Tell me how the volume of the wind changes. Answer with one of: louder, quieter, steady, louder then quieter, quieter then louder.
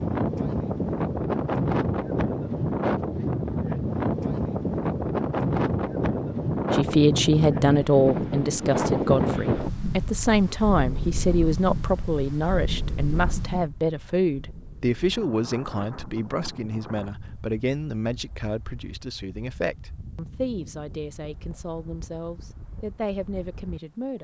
quieter.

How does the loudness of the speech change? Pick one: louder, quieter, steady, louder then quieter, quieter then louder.
quieter.